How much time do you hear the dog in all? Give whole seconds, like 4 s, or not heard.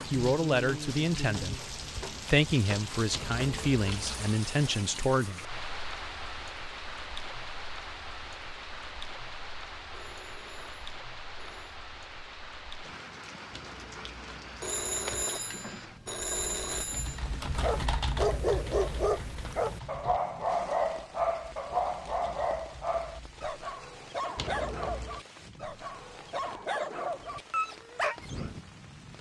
11 s.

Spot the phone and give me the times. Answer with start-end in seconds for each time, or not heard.
9.9-11.8, 14.6-17.2.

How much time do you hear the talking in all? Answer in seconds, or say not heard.
5 s.